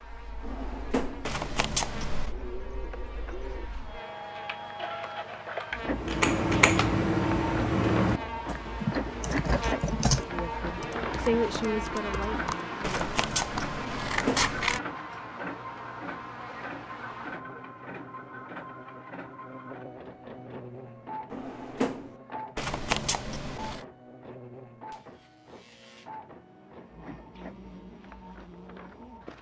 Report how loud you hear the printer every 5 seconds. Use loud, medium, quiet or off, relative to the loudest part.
medium, loud, loud, medium, medium, quiet.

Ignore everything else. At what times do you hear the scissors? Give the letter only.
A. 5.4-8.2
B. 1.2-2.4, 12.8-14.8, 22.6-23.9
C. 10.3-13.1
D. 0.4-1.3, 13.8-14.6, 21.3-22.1
B.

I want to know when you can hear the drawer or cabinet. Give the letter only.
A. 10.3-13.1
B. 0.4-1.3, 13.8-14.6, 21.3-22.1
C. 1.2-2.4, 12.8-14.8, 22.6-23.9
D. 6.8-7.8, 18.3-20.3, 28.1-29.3
B.